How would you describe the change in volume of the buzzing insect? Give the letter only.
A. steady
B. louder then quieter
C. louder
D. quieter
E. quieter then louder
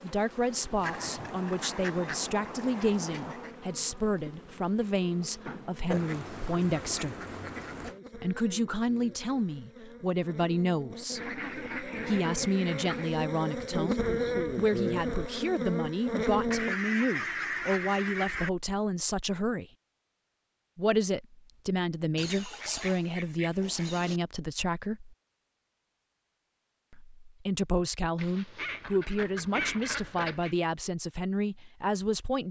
C.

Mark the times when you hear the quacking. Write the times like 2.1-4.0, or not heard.
0.8-3.5, 5.9-8.0, 11.2-13.1, 16.5-18.5, 22.1-24.2, 28.1-30.6.